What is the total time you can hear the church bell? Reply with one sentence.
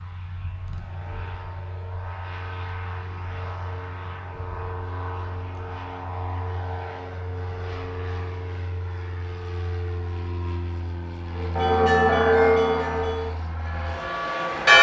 You can hear the church bell for 3 seconds altogether.